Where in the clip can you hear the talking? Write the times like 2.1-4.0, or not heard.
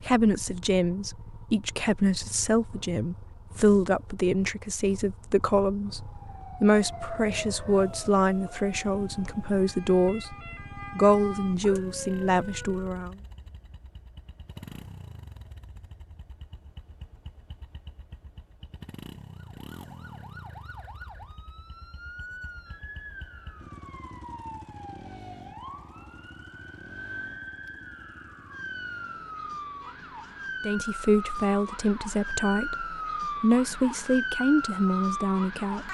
0.0-10.3, 10.9-13.2, 30.6-35.8.